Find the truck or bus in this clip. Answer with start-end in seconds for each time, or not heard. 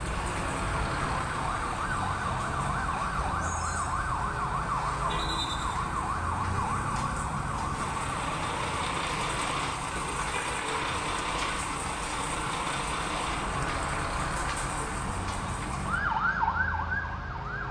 0.0-17.6.